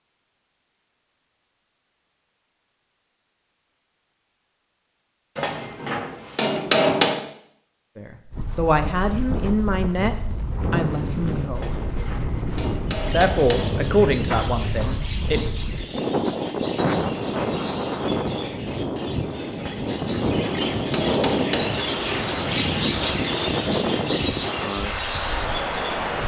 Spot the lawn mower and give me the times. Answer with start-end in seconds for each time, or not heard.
not heard.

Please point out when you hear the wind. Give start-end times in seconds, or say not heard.
8.3-26.2.